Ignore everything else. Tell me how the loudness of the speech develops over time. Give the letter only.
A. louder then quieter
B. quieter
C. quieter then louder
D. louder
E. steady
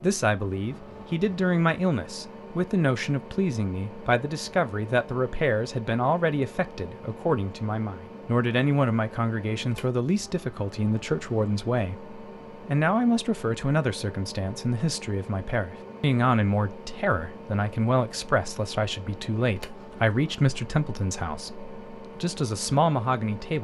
E.